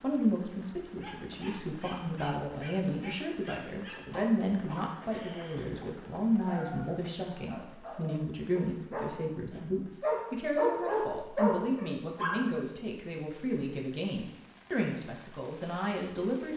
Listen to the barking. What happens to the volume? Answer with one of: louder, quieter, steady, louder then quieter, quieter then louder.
louder.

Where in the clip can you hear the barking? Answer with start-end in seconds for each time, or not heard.
1.0-12.5.